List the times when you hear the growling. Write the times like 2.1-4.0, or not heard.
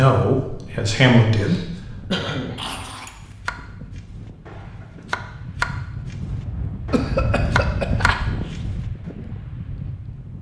2.5-3.4.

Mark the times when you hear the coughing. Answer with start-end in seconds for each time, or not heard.
1.3-2.9, 6.9-8.6.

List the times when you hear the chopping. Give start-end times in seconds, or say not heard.
3.5-9.1.